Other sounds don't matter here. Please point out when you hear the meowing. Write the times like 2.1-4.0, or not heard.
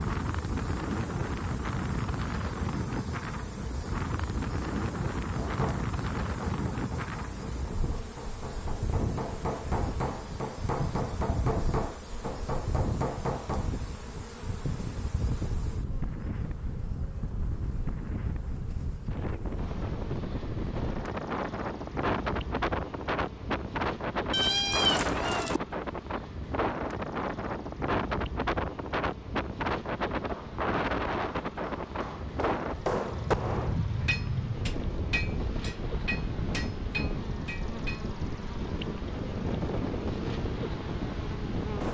24.3-25.6.